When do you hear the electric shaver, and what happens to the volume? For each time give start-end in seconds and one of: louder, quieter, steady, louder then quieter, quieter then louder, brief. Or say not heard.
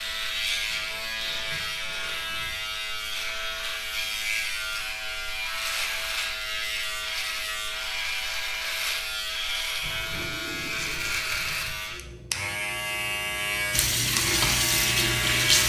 0.0-15.6 steady.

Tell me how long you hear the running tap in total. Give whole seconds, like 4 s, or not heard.
2 s.